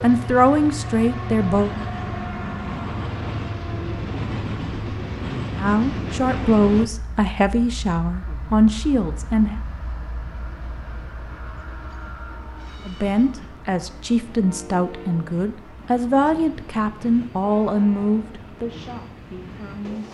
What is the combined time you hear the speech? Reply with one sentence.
You can hear the speech for 13 seconds altogether.